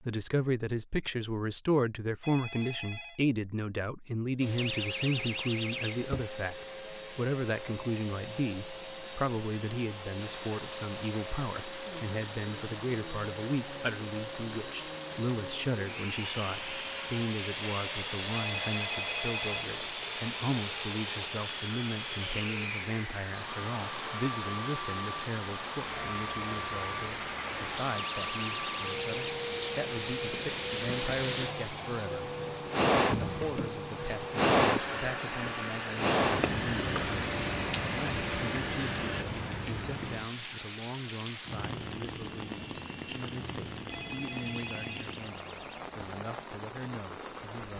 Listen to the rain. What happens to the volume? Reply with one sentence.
The loudness of the rain goes up, then down.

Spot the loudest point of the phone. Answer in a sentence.
The loudest moment of the phone is at 19 seconds.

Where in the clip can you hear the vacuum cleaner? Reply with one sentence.
The vacuum cleaner can be heard from 4.3 to 39.2 s.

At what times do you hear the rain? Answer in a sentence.
The rain can be heard from 10.1 to 47.7 s.